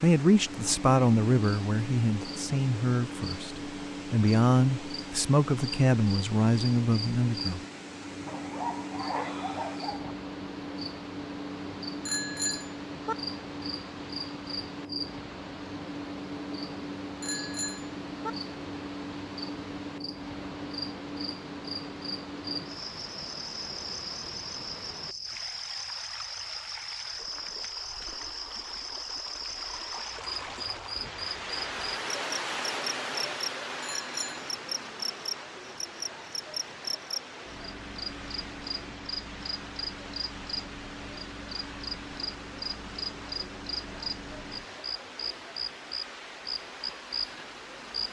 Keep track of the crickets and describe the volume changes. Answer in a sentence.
The volume of the crickets stays about the same.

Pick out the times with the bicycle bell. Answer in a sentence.
The bicycle bell can be heard from 12.1 to 13.2 s, from 17.2 to 18.3 s and from 33.8 to 34.5 s.